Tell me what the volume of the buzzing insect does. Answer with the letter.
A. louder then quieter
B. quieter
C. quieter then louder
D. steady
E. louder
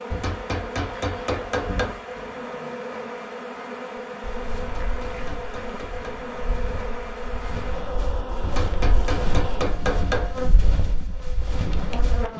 D.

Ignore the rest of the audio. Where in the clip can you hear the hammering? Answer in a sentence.
The hammering can be heard from 0.1 to 2.0 s, from 4.6 to 6.1 s and from 8.4 to 10.4 s.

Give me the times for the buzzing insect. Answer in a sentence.
You can hear the buzzing insect from 0.0 to 12.3 s.